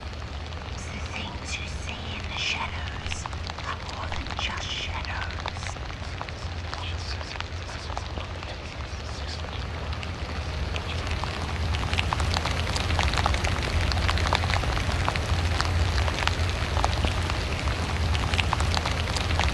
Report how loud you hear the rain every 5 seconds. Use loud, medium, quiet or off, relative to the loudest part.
medium, medium, loud, loud.